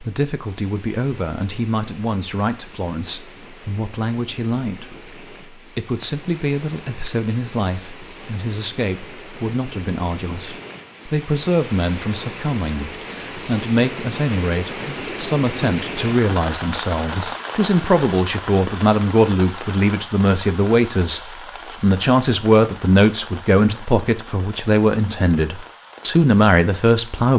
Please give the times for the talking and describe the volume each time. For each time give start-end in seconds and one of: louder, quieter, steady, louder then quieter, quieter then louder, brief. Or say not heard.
0.0-27.3 louder.